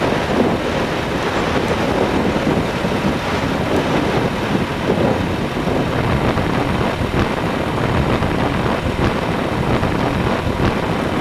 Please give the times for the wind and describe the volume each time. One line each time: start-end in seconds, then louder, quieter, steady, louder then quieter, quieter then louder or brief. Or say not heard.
0.0-11.1 steady.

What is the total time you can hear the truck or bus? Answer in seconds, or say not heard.
11 s.